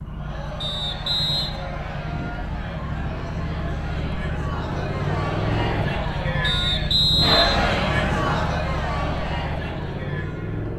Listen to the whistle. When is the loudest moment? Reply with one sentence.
The loudest moment of the whistle is at 7 seconds.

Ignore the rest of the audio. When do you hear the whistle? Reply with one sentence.
The whistle can be heard from 0.6 to 1.5 s and from 6.4 to 8.4 s.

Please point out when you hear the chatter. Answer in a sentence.
The chatter can be heard from 0.0 to 10.7 s.